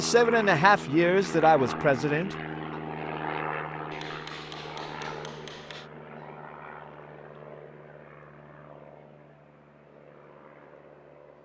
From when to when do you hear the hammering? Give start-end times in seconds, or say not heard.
3.9-5.9.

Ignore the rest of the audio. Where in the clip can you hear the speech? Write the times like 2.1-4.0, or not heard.
0.0-2.8.